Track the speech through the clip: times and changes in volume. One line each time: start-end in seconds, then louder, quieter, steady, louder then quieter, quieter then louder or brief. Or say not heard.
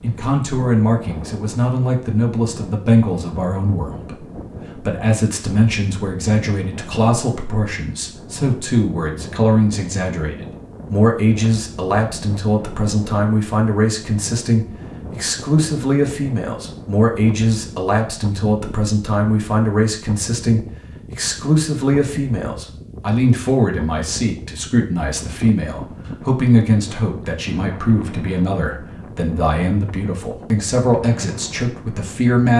0.0-32.5 steady.